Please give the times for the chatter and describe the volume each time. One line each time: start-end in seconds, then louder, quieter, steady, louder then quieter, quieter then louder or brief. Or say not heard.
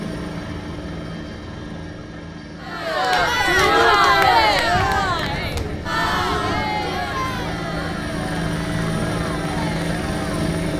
2.6-10.5 quieter.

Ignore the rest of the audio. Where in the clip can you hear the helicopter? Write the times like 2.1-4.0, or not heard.
0.0-10.7.